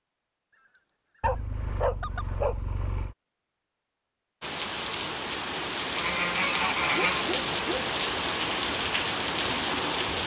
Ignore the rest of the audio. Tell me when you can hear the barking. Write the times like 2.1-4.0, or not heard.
1.2-3.1, 6.9-8.0.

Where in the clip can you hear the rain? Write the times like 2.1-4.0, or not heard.
4.4-10.2.